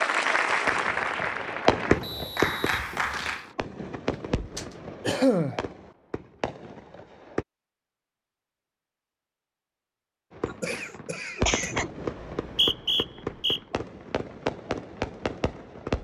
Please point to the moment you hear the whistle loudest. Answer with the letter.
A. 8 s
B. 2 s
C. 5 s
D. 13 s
D.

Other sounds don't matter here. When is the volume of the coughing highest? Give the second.
5 s.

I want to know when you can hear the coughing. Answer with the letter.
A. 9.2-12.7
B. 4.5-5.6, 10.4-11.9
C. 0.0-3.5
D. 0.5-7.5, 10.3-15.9
B.